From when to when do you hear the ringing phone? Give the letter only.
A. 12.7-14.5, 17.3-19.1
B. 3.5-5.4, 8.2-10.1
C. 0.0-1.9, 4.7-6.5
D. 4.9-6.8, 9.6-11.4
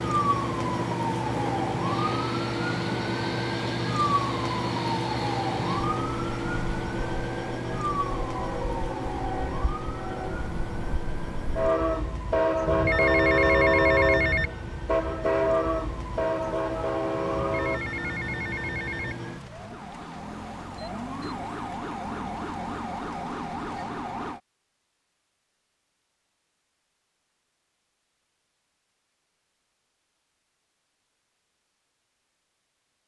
A.